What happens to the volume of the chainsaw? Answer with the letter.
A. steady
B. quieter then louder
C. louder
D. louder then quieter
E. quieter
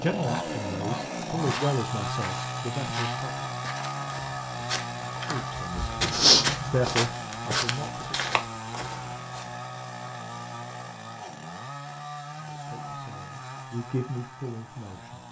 E.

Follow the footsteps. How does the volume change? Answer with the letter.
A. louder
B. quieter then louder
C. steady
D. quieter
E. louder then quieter
E.